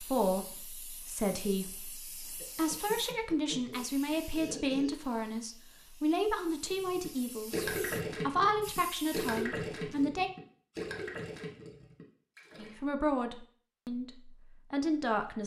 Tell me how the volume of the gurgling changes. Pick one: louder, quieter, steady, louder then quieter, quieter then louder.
quieter.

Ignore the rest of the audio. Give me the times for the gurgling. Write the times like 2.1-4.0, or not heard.
6.7-12.8.